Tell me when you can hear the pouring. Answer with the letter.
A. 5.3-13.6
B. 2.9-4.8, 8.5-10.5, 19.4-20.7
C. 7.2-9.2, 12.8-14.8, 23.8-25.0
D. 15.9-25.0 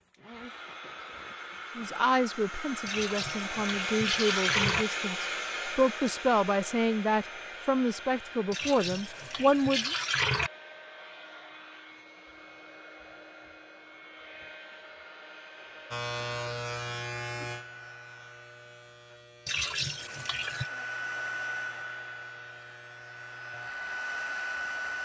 B.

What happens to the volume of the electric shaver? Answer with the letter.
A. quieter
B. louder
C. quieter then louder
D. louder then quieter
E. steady
A.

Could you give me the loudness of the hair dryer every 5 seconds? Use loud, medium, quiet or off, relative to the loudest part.
loud, loud, quiet, quiet, loud.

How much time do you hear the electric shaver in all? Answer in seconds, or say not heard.
9 s.